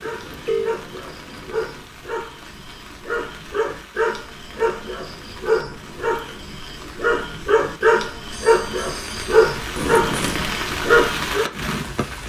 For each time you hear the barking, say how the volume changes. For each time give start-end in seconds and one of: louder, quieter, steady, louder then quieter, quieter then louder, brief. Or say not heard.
0.0-11.5 louder.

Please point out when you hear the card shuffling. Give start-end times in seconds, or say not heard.
0.2-1.9, 4.5-6.5, 9.8-10.5.